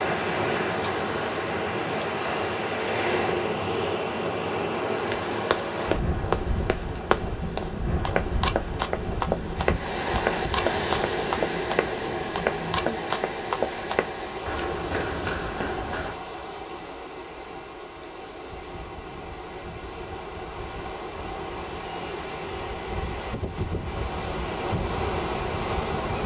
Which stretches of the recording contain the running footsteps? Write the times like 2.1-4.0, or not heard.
5.1-16.2.